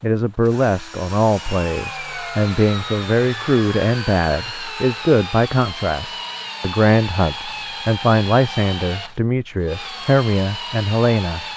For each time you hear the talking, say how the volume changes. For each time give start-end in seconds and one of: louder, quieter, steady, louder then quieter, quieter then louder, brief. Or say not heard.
0.0-11.4 steady.